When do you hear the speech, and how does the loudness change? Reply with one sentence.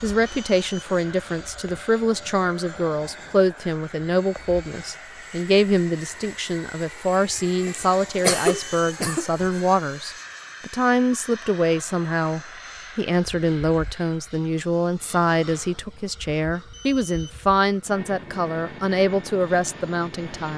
You can hear the speech from 0.0 to 20.5 s, at a steady volume.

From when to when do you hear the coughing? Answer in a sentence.
The coughing can be heard from 7.7 to 9.2 s.